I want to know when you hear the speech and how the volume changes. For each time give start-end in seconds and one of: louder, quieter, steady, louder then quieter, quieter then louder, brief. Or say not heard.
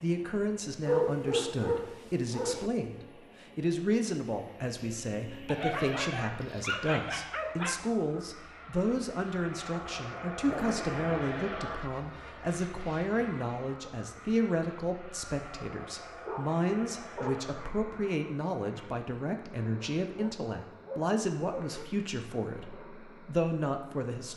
0.0-24.3 steady.